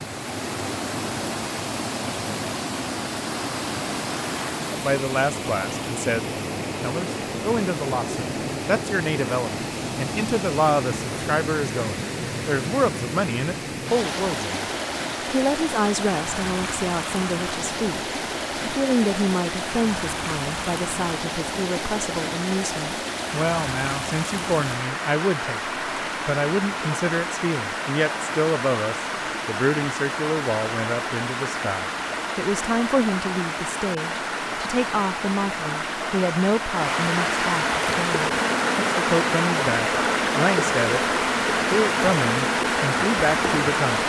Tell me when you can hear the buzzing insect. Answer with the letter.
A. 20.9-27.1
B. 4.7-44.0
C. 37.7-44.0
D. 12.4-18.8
C.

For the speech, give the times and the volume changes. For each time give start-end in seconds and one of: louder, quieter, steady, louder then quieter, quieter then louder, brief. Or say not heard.
4.7-44.0 steady.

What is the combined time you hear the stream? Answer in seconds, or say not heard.
44 s.